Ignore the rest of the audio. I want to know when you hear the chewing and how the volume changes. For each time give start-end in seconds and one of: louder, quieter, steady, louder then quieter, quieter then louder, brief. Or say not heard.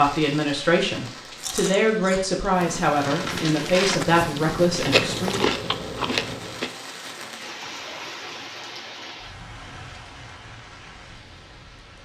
1.4-6.7 louder.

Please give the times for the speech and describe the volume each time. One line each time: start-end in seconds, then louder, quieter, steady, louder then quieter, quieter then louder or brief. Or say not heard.
0.0-5.5 steady.